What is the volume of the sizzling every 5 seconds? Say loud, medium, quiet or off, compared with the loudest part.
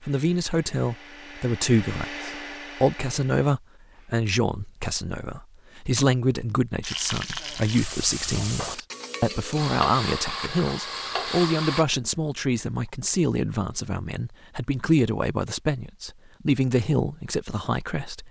off, loud, loud, off.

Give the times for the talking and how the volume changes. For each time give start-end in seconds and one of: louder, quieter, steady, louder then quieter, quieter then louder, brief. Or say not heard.
0.0-18.2 steady.